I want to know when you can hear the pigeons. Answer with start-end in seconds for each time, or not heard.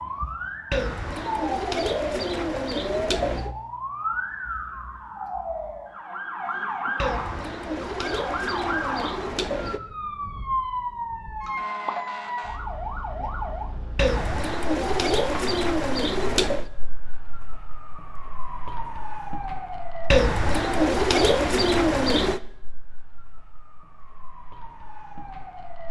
0.7-3.5, 7.0-9.8, 13.9-16.6, 20.1-22.4.